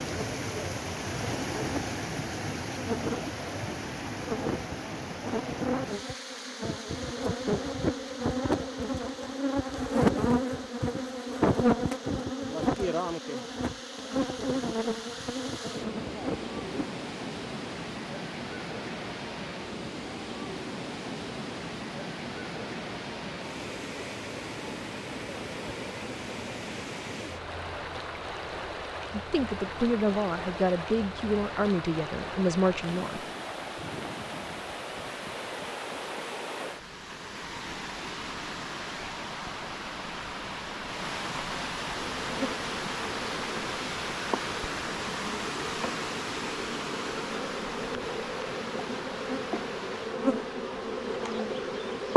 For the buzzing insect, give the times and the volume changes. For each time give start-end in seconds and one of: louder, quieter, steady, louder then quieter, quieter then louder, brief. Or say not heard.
0.0-16.9 louder then quieter
42.0-52.1 louder.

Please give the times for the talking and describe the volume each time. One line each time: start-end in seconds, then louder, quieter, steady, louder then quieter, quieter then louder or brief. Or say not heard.
29.1-33.2 steady.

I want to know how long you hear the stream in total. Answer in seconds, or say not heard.
52 s.